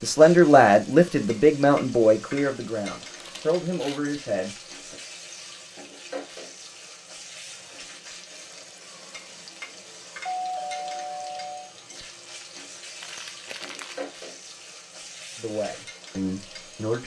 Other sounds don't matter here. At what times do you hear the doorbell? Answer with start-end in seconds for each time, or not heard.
10.2-11.7.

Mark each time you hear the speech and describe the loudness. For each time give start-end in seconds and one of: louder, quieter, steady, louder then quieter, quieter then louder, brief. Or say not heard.
0.0-5.0 quieter
15.3-17.0 brief.